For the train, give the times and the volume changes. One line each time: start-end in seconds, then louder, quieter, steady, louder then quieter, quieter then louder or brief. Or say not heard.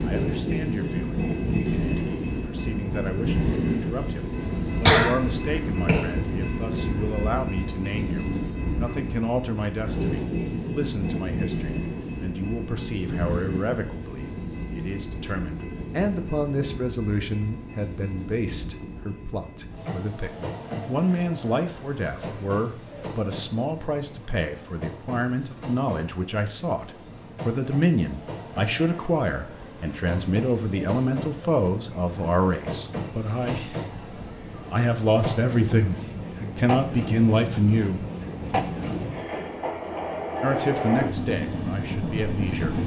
0.0-42.8 quieter then louder.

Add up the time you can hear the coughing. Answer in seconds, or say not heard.
2 s.